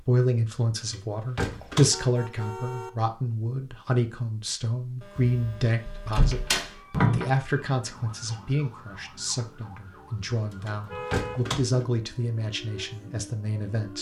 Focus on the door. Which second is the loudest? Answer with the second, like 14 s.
7 s.